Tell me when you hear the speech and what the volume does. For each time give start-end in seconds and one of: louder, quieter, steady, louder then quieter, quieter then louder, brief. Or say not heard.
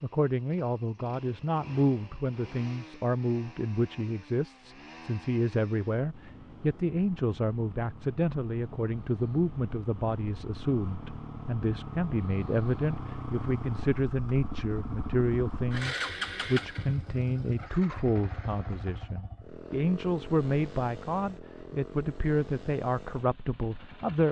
0.0-24.2 steady.